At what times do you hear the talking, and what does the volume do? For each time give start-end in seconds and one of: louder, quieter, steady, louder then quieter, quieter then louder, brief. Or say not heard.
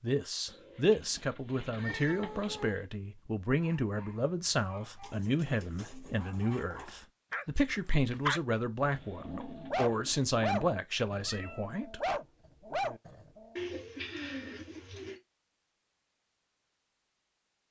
0.0-12.2 steady.